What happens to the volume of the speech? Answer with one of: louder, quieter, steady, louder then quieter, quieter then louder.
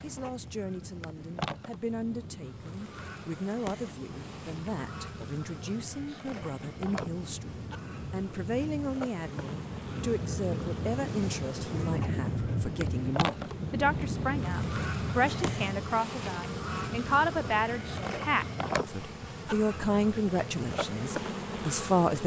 louder.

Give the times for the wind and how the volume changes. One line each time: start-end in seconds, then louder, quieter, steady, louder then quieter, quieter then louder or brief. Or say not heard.
0.0-22.1 louder then quieter.